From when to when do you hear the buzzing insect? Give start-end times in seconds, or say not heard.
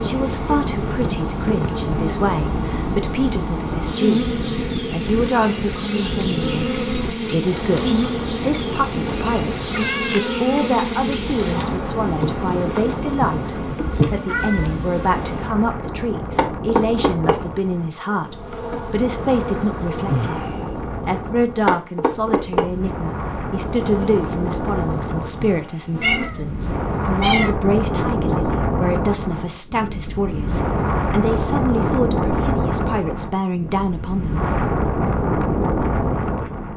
0.0-26.3.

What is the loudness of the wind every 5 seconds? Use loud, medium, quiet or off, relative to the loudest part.
medium, medium, medium, medium, medium, loud, loud, loud.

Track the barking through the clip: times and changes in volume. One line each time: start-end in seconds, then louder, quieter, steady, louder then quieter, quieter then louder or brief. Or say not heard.
not heard.